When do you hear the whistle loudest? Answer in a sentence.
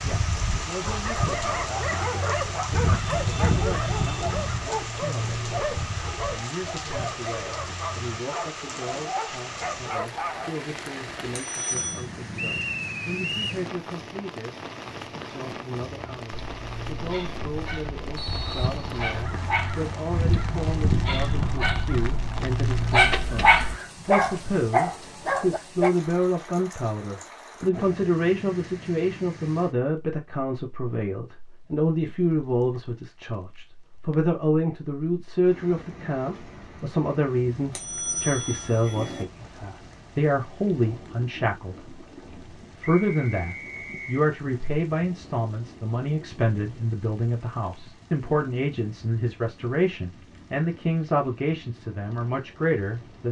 The loudest moment of the whistle is at 13 seconds.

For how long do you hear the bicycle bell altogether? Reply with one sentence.
The bicycle bell can be heard for 2 seconds in total.